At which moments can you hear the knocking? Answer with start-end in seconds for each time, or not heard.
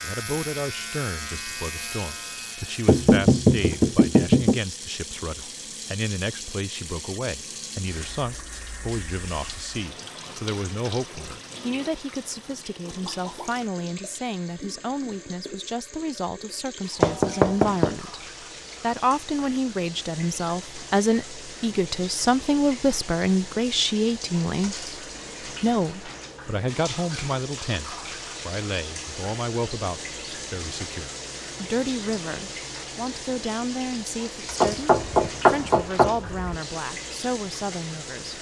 2.9-4.6, 17.0-17.9, 34.6-36.5.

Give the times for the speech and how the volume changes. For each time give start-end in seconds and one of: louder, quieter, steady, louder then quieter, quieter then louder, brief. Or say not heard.
0.0-18.2 steady
18.8-38.3 quieter.